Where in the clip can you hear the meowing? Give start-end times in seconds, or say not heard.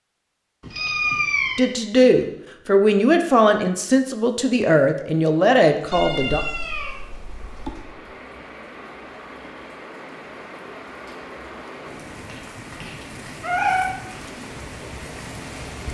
0.6-1.6, 5.9-7.8, 12.2-13.8.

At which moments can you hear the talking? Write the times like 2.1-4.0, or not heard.
1.6-6.5.